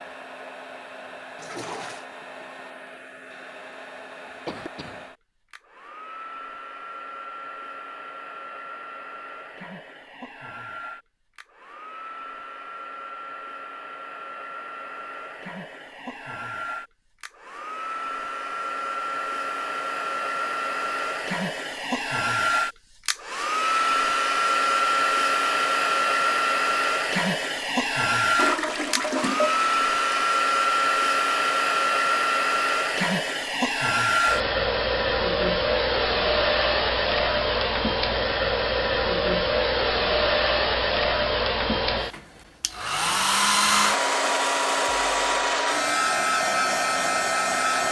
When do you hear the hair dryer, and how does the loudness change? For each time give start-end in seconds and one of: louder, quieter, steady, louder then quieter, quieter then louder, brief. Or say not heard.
0.0-47.8 louder.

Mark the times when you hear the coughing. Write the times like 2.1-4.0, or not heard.
4.5-5.0.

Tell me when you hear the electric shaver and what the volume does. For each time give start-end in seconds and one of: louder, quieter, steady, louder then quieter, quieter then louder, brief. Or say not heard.
not heard.